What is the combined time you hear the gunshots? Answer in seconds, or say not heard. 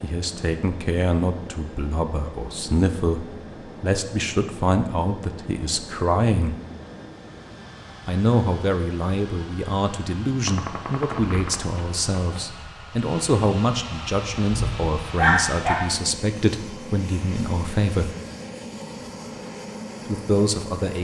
2 s.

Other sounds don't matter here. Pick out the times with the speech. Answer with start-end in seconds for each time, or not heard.
0.0-6.6, 8.1-18.1, 20.1-21.0.